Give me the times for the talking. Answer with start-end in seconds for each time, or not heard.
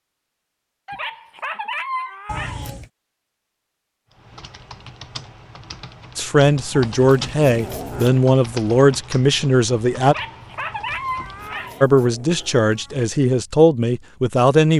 6.2-10.2, 11.8-14.7.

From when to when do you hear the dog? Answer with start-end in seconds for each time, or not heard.
0.8-2.7, 10.0-11.8.